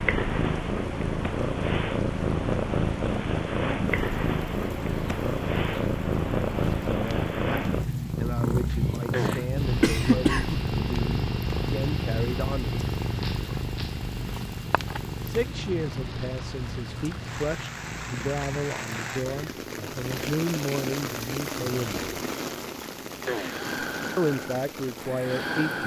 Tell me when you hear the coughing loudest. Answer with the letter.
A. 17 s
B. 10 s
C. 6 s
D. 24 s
B.